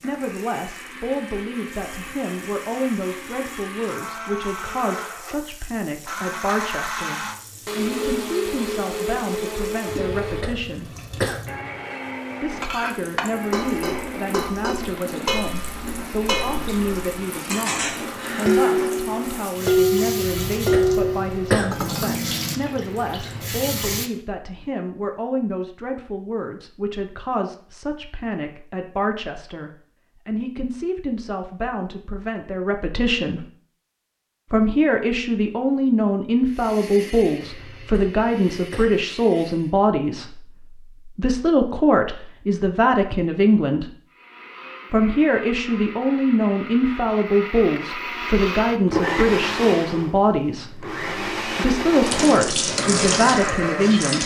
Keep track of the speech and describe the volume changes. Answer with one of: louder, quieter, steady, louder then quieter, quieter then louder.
louder.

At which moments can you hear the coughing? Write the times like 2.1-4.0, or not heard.
9.9-11.4, 20.1-21.8, 37.5-39.0.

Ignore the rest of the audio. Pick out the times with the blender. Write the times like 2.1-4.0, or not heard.
0.0-19.4, 36.5-39.7, 44.1-54.2.